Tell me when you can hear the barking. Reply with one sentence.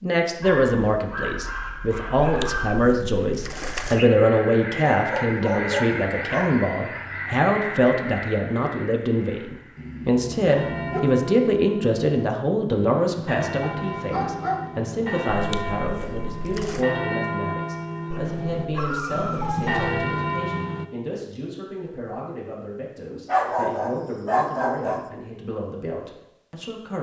You can hear the barking from 0.4 to 2.9 s, from 4.7 to 6.5 s, from 9.8 to 11.0 s, from 13.7 to 14.7 s, from 18.1 to 19.9 s and from 23.2 to 25.1 s.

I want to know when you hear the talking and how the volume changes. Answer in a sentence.
The talking can be heard from 0.0 to 26.9 s, getting quieter.